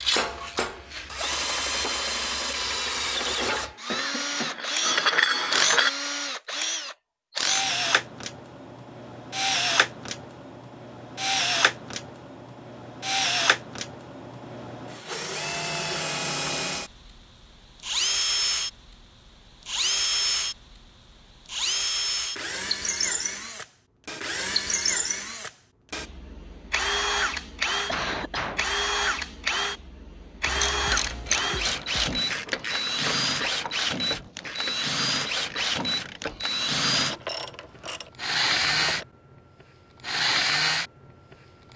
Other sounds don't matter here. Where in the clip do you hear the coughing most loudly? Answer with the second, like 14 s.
28 s.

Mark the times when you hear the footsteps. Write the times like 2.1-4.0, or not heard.
not heard.